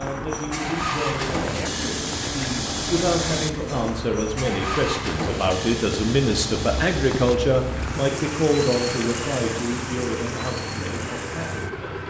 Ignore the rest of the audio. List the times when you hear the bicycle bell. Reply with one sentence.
You can't hear the bicycle bell here.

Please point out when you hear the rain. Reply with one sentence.
You can hear the rain from 0.0 to 11.8 s.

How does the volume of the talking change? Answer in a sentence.
The loudness of the talking goes up, then down.